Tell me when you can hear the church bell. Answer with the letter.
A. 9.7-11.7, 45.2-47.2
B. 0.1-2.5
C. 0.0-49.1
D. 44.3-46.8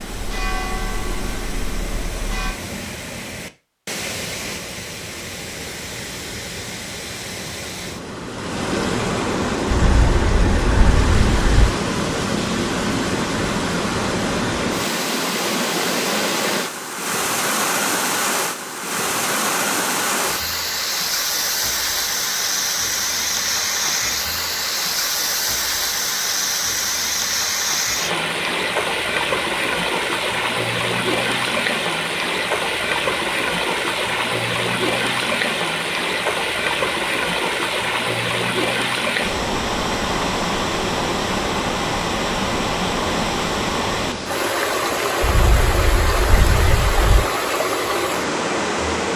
B.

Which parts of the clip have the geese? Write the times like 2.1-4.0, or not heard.
9.7-11.7, 45.2-47.2.